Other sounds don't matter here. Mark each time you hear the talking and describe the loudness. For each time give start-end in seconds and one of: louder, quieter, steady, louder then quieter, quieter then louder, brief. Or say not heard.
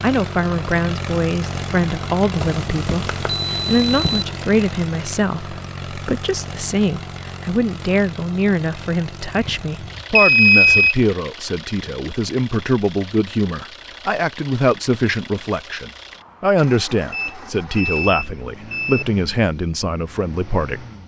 0.0-20.9 steady.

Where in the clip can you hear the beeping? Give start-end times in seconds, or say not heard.
2.4-4.2, 9.3-10.9, 17.1-19.1.